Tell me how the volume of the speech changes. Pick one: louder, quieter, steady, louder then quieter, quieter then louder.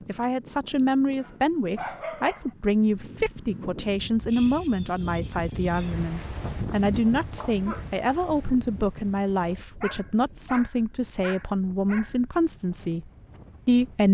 steady.